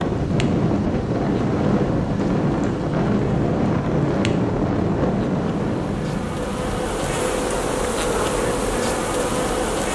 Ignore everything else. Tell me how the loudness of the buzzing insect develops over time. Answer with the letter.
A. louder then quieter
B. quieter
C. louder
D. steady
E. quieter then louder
C.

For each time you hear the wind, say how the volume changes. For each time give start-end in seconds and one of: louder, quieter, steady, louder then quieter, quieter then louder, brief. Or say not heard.
0.0-9.8 quieter.